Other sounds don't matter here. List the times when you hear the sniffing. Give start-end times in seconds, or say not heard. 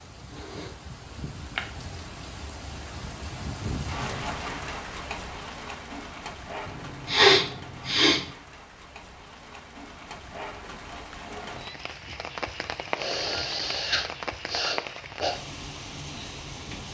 0.3-1.6, 6.7-8.2, 12.9-15.3.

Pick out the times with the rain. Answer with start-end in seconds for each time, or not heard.
0.0-16.9.